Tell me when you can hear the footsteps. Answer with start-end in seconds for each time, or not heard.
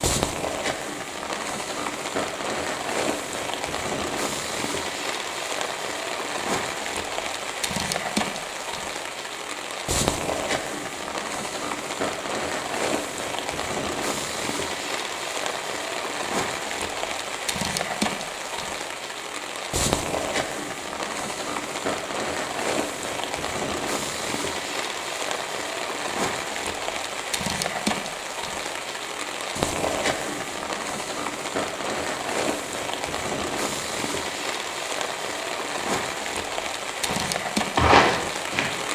37.0-38.6.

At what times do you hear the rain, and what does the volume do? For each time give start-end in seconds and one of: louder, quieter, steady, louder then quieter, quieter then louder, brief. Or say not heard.
0.0-38.9 steady.